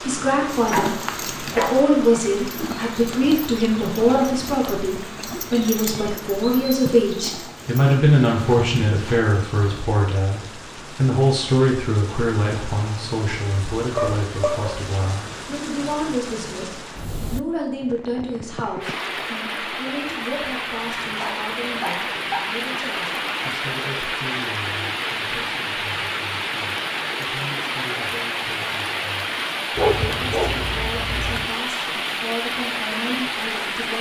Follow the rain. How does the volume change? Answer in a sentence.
The loudness of the rain goes up.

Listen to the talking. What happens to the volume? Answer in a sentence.
The loudness of the talking goes down.